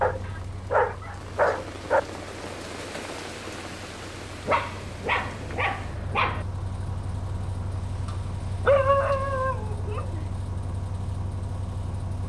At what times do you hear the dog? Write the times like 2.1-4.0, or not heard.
0.0-2.0, 4.5-6.5, 8.7-10.2.